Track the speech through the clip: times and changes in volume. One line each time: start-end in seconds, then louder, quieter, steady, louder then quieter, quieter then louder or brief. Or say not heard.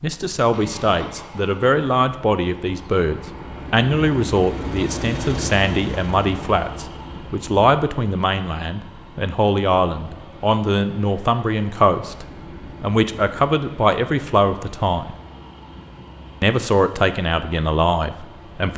0.0-15.2 steady
16.4-18.7 brief.